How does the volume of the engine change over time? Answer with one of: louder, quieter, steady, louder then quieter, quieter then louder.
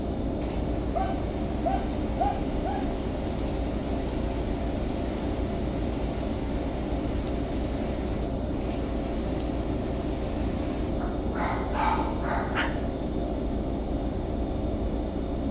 steady.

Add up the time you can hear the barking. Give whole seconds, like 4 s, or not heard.
4 s.